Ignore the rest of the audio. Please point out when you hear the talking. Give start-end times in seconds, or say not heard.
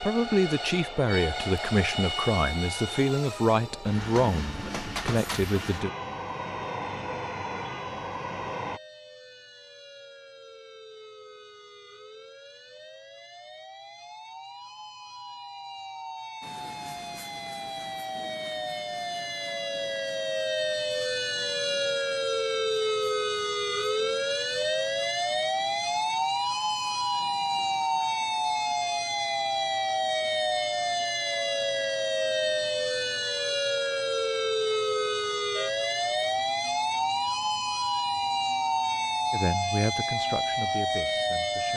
0.0-5.9, 39.3-41.7.